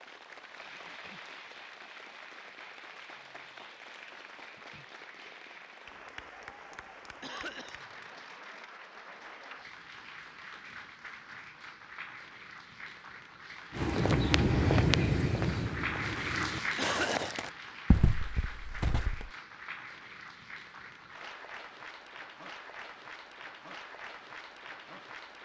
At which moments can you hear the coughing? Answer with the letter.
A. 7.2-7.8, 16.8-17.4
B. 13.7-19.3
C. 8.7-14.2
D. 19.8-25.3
A.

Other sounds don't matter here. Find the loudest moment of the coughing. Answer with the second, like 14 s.
17 s.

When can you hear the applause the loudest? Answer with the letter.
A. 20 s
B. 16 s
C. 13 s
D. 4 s
B.